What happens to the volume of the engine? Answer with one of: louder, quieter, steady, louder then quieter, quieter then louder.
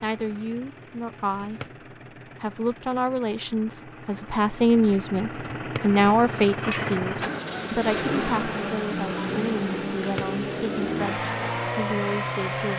louder.